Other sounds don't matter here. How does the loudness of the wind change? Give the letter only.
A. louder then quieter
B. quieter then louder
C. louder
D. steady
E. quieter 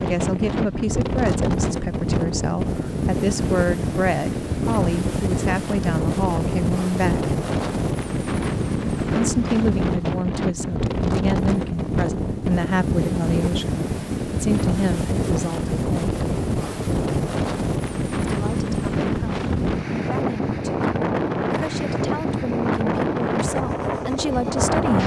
D.